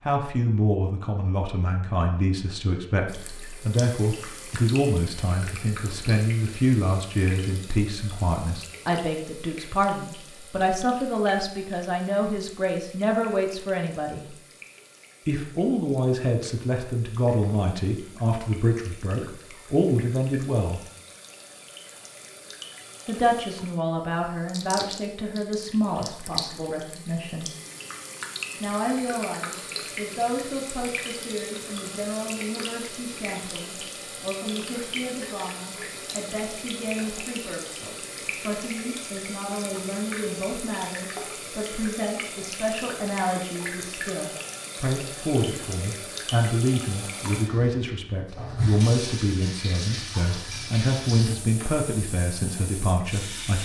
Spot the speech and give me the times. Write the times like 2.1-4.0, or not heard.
0.1-14.3, 15.2-20.8, 23.1-27.5, 28.6-53.5.